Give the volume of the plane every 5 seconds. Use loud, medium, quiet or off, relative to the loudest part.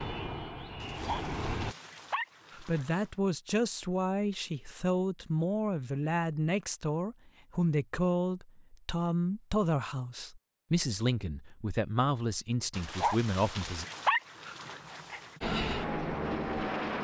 medium, off, off, loud.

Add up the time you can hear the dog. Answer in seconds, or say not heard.
5 s.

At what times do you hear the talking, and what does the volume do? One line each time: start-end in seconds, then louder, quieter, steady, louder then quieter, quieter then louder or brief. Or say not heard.
2.6-13.8 steady.